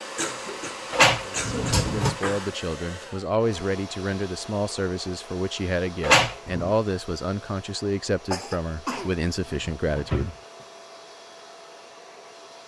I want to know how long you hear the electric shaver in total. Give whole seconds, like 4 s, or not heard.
not heard.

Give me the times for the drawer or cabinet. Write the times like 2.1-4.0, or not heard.
0.9-2.1, 6.0-6.7, 8.8-10.3.